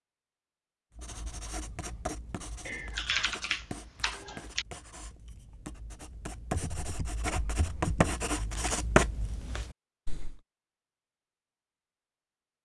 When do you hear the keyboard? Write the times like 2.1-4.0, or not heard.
2.6-4.7, 6.5-8.2.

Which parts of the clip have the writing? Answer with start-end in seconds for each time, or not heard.
0.9-10.4.